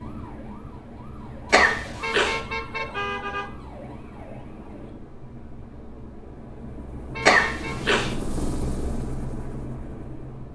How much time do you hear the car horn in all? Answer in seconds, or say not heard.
2 s.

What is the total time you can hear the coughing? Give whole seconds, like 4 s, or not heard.
2 s.